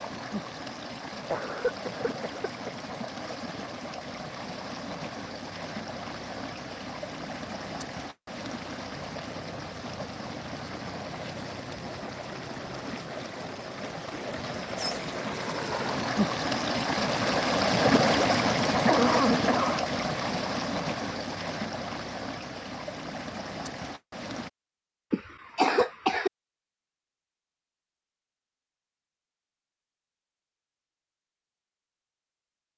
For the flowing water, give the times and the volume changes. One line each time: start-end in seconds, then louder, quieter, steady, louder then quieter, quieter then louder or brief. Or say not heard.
0.0-24.5 louder then quieter.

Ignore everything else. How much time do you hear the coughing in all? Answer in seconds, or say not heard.
4 s.